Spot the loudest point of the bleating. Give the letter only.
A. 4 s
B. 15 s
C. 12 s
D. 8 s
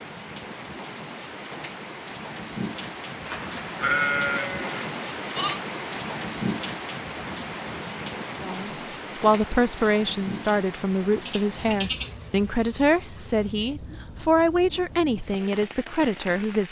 A.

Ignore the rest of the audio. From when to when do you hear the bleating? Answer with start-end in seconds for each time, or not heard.
3.2-5.6, 11.2-12.6.